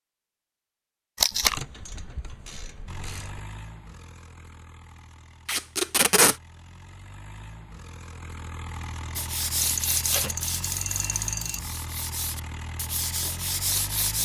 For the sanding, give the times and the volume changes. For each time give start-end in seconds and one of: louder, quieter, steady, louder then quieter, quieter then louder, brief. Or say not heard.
9.2-14.2 quieter then louder.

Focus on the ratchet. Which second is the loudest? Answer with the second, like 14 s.
11 s.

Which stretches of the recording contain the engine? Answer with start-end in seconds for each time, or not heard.
2.9-14.2.